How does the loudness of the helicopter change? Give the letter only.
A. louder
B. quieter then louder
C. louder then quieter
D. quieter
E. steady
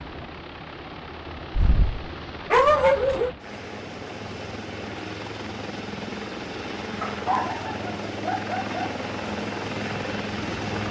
A.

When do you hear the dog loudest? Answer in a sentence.
The volume of the dog peaks at 3 seconds.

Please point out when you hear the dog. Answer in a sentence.
You can hear the dog from 1.5 to 3.3 s and from 7.0 to 8.8 s.